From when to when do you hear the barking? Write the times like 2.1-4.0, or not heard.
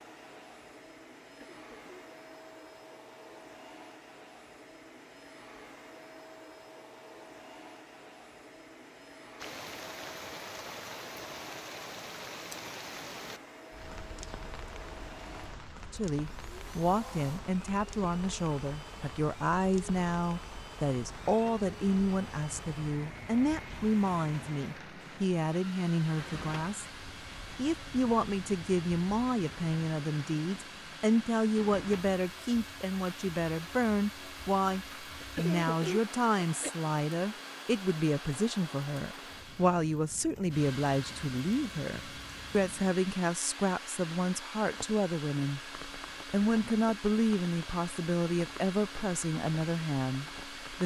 not heard.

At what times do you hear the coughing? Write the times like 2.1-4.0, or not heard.
1.2-1.8, 35.2-36.7.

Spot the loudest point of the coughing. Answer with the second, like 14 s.
36 s.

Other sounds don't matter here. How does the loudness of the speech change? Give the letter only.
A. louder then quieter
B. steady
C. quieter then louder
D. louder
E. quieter
B.